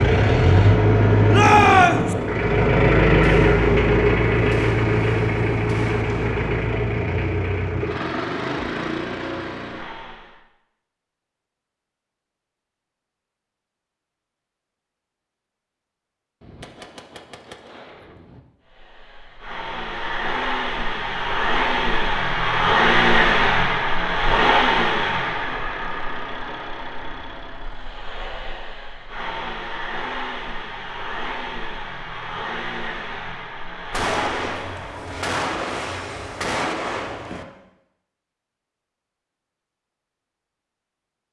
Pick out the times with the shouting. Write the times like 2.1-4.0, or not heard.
1.3-2.1.